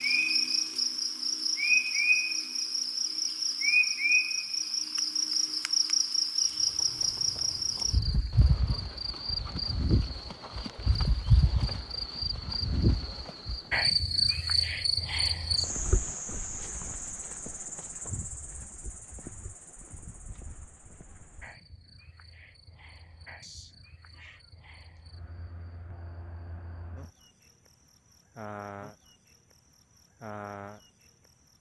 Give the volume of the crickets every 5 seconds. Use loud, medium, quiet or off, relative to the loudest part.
loud, loud, loud, medium, quiet, quiet, quiet.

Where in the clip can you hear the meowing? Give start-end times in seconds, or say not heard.
23.4-25.0.